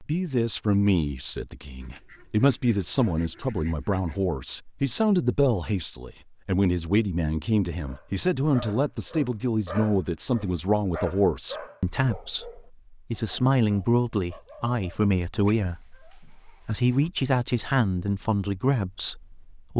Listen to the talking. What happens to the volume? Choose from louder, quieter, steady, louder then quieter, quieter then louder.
steady.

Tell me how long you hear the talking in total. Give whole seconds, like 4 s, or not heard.
20 s.